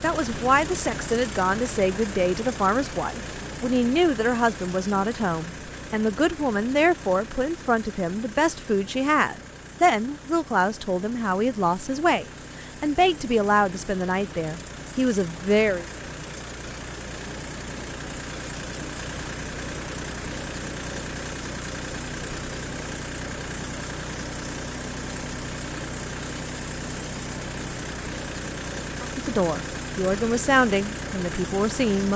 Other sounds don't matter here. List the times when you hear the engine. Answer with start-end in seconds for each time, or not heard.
0.0-32.1.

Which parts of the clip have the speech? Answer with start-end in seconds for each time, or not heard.
0.0-15.8, 29.0-32.1.